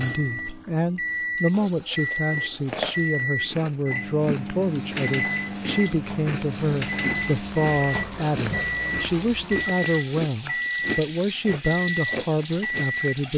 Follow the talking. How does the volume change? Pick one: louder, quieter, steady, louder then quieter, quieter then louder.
steady.